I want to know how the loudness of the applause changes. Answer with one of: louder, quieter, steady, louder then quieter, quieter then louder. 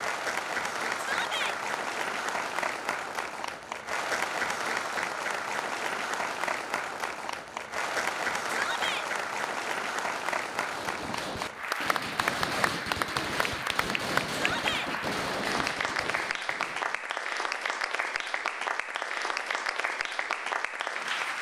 steady.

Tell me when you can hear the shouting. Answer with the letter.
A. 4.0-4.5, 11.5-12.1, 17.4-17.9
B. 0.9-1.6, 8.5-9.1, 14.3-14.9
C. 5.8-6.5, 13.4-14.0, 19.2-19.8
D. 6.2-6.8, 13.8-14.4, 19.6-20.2
B.